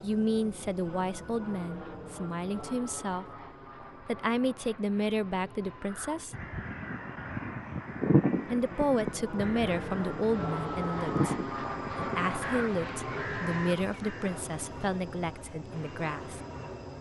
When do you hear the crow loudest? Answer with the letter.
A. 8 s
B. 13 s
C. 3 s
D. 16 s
A.